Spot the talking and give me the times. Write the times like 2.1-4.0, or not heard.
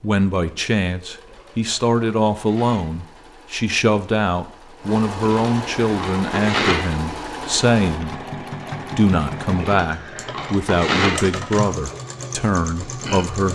0.0-8.2, 8.9-13.5.